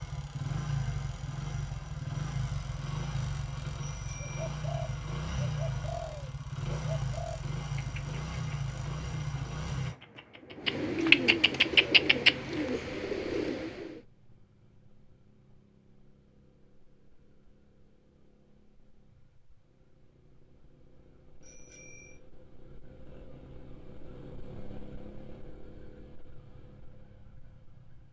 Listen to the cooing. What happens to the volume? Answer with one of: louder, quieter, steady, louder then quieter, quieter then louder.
quieter then louder.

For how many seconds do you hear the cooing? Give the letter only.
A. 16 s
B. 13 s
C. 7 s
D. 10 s
D.